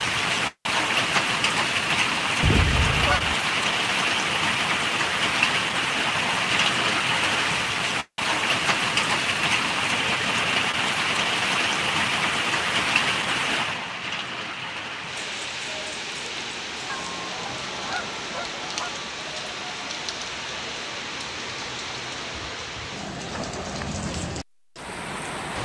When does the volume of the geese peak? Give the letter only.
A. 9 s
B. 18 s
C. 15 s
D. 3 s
D.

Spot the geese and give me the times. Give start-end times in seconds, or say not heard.
2.4-3.4, 16.9-18.9.